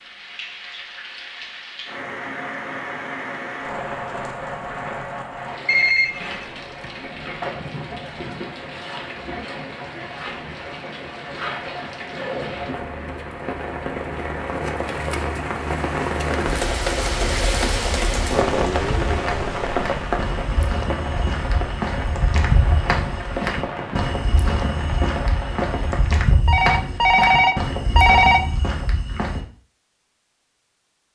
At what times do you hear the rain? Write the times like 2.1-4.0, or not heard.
0.0-26.2.